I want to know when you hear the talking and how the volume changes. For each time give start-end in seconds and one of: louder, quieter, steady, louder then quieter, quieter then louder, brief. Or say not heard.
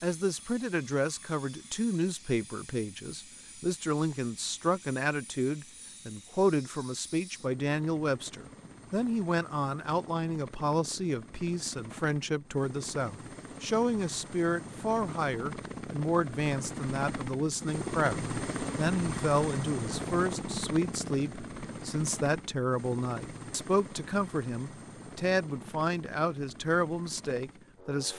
0.0-28.1 steady.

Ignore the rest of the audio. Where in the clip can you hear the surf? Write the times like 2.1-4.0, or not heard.
not heard.